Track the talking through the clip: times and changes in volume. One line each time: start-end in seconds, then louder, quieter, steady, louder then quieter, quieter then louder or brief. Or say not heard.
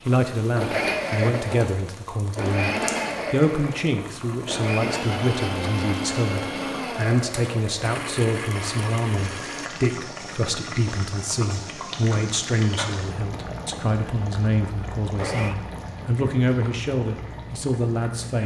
0.1-18.4 steady.